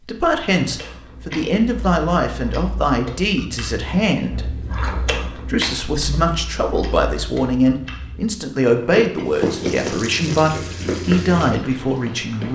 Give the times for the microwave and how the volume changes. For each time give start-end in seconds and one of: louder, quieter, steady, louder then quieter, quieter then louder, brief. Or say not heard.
not heard.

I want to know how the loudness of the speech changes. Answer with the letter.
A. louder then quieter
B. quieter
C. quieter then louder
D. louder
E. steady
E.